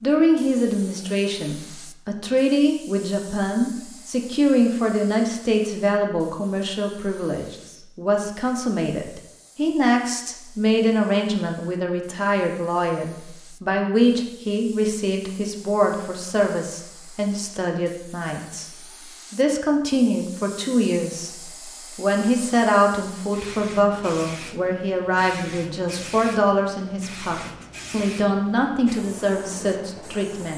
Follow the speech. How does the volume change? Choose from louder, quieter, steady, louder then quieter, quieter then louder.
steady.